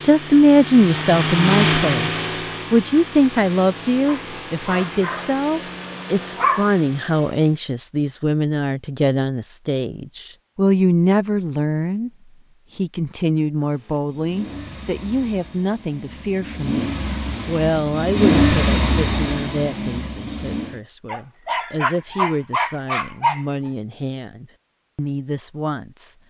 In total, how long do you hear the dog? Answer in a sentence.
The dog can be heard for 5 seconds in total.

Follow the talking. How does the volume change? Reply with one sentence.
The volume of the talking goes down.